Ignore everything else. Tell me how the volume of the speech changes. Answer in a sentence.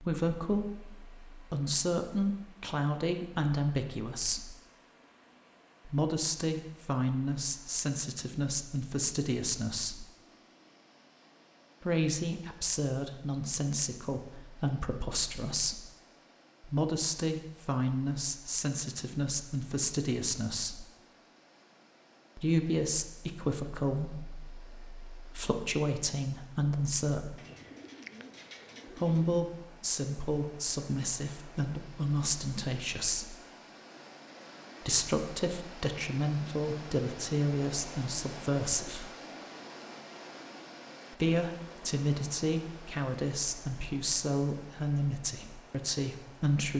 The volume of the speech stays about the same.